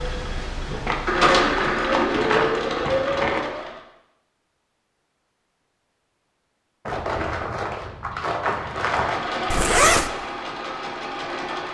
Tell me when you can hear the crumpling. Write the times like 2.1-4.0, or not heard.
0.8-3.5, 6.8-9.2.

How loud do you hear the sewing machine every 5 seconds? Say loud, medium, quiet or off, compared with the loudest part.
loud, medium, medium.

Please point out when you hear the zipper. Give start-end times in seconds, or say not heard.
9.5-10.1.